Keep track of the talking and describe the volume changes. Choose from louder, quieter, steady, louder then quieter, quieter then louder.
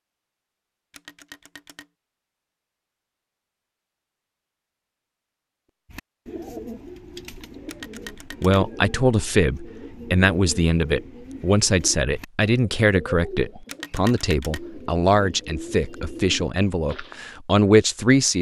steady.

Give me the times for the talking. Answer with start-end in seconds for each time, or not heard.
8.4-18.3.